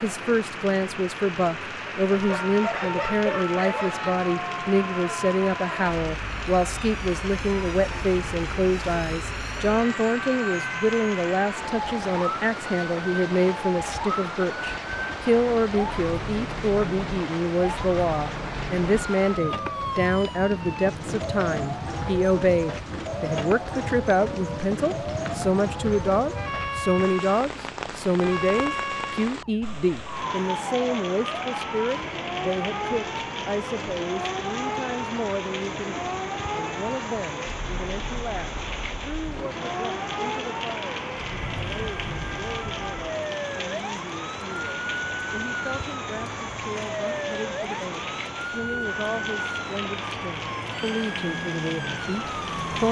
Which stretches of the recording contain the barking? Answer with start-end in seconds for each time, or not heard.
2.1-4.1.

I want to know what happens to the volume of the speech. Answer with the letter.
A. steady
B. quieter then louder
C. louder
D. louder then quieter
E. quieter
E.